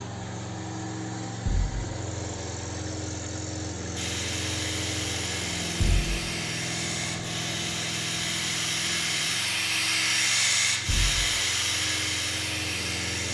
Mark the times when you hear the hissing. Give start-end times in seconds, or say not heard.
4.0-13.3.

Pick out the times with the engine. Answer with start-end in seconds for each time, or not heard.
0.0-13.3.